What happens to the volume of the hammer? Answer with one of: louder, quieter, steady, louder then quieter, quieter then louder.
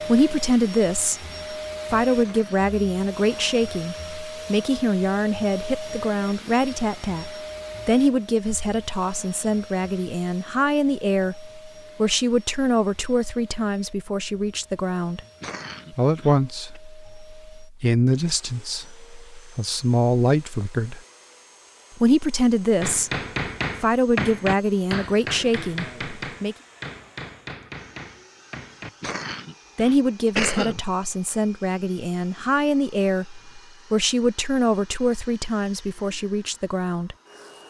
quieter.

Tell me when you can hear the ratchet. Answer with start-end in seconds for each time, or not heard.
not heard.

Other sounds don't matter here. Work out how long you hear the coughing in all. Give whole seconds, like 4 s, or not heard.
4 s.